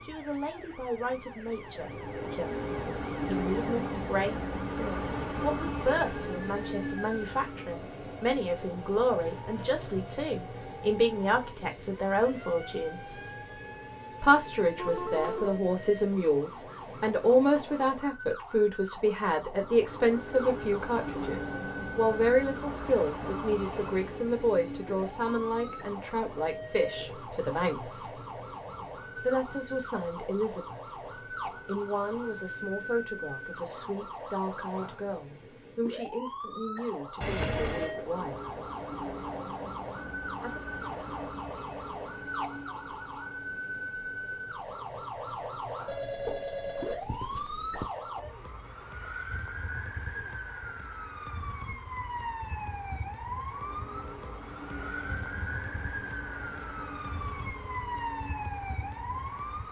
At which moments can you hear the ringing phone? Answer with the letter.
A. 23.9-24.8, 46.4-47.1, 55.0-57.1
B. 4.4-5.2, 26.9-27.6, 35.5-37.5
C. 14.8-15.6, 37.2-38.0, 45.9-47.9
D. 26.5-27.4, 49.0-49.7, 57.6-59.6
C.